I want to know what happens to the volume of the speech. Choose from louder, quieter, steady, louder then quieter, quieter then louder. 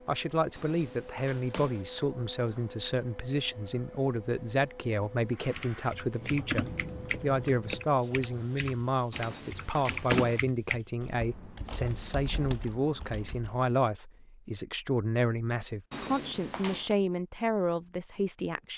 steady.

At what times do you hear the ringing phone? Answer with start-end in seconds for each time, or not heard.
0.6-1.9, 9.1-10.4, 15.9-16.9.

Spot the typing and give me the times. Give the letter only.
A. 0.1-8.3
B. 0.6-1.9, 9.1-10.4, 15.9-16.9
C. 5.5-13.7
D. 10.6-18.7
C.